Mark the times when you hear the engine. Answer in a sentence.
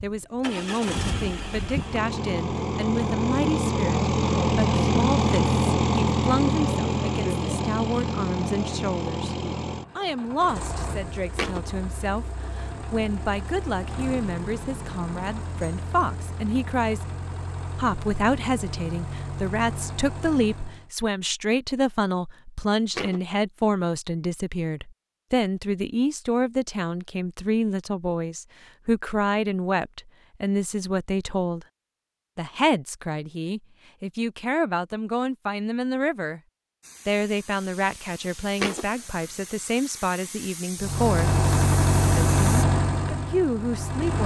You can hear the engine from 0.0 to 20.9 s and from 40.8 to 44.2 s.